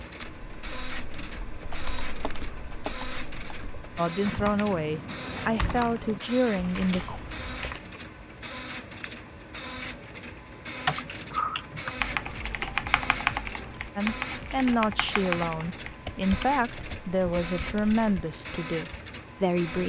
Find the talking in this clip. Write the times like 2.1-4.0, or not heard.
4.0-7.2, 13.9-19.8.